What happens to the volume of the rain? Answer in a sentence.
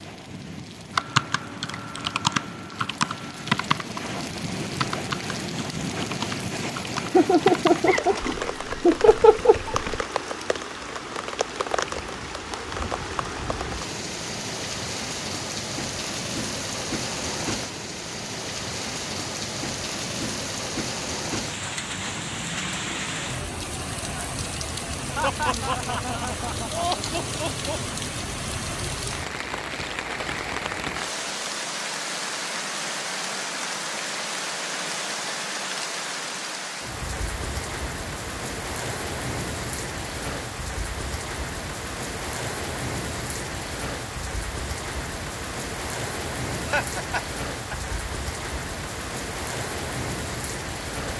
The loudness of the rain stays about the same.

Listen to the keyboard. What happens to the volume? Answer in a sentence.
The loudness of the keyboard goes down.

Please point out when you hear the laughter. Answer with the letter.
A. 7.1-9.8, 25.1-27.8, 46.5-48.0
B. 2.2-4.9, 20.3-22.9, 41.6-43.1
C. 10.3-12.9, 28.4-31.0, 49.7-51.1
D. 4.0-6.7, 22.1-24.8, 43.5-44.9
A.